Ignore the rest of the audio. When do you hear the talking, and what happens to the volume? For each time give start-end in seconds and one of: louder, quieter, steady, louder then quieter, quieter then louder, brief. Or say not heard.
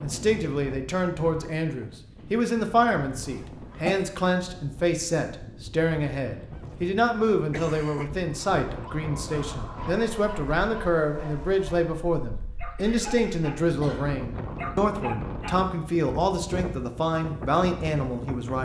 0.0-18.5 steady.